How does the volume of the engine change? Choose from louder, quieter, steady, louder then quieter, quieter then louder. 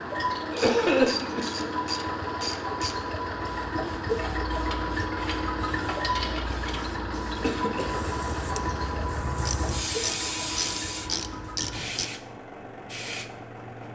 quieter.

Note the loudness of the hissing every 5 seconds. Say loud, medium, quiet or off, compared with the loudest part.
medium, loud, loud.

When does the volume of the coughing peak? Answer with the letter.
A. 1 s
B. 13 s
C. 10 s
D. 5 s
A.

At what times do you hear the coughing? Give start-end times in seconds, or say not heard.
0.5-1.4, 7.4-8.9.